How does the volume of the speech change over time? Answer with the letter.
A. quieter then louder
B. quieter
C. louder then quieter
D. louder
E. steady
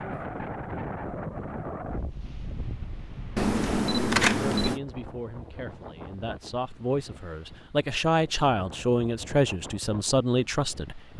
D.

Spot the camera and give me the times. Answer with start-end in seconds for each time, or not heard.
3.4-4.8.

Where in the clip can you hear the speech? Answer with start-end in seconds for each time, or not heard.
4.3-11.1.